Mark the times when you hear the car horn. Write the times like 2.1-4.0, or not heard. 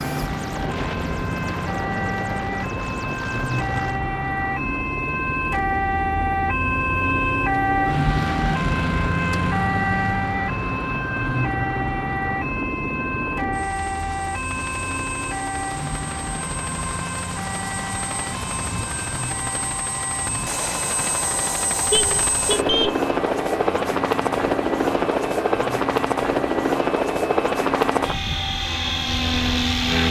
21.9-22.9.